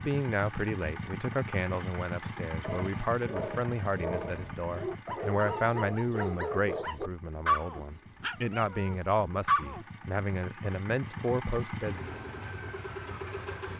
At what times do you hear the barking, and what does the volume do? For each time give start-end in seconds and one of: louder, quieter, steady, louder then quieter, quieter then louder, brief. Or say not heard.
2.6-9.8 louder then quieter.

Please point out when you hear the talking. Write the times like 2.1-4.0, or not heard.
0.1-12.0.